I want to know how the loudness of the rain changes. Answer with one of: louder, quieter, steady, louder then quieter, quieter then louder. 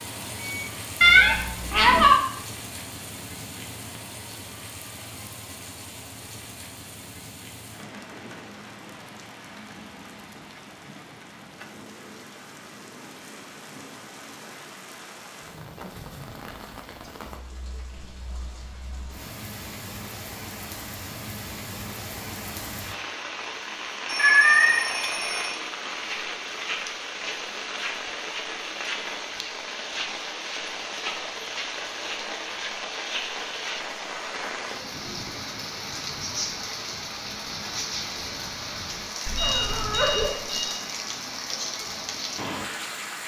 louder.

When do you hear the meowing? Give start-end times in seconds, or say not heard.
1.0-2.2, 24.1-24.8, 39.2-40.3.